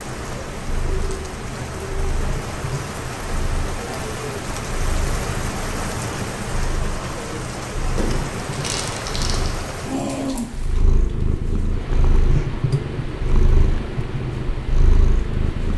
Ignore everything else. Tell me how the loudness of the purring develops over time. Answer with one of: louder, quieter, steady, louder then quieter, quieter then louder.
louder.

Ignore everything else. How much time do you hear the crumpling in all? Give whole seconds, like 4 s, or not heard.
2 s.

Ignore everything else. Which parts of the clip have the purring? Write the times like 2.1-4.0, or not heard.
0.1-15.7.